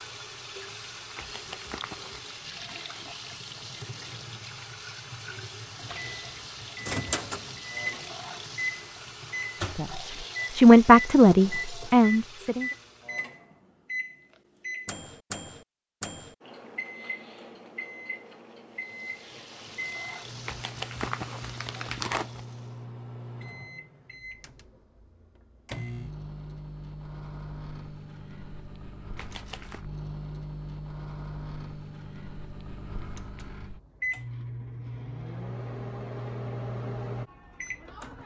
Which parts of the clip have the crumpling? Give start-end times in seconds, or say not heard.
1.1-2.2, 20.4-22.4, 29.1-29.9.